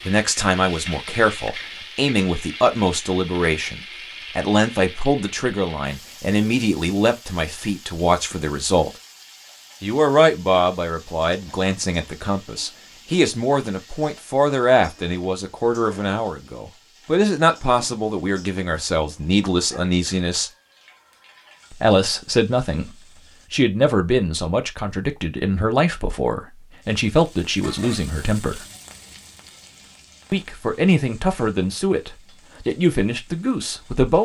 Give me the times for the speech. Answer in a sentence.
The speech can be heard from 0.1 to 8.9 s, from 9.8 to 20.5 s, from 21.7 to 28.6 s and from 30.3 to 34.2 s.